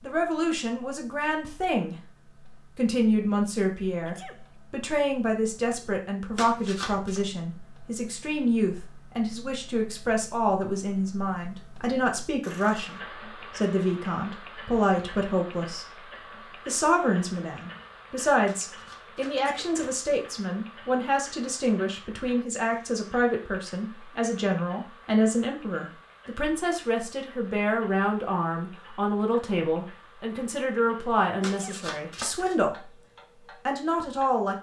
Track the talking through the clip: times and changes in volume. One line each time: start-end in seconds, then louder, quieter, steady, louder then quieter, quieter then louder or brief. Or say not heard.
0.0-1.9 brief
2.8-33.0 steady
33.6-34.5 brief.